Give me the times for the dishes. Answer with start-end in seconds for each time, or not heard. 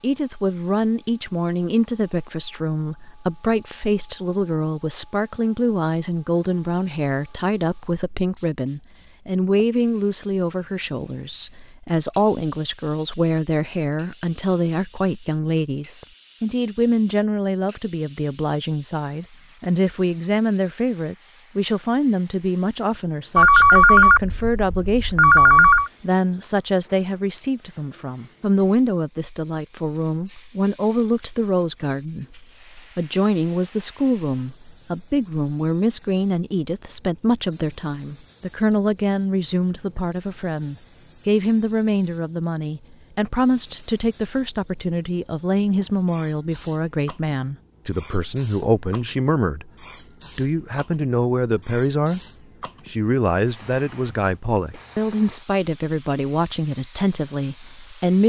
not heard.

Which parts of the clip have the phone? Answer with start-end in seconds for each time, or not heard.
23.4-25.9.